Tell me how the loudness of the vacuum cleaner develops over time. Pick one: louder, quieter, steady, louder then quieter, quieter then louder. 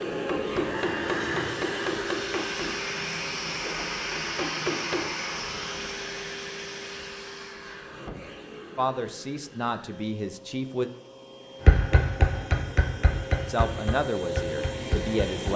quieter then louder.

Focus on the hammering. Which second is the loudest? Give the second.
12 s.